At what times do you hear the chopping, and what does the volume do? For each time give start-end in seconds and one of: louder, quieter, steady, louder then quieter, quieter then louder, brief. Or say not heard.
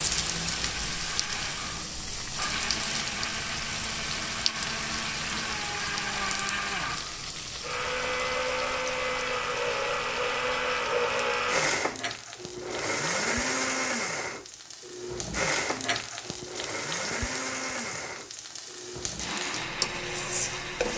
not heard.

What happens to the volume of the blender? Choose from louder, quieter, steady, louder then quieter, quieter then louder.
louder then quieter.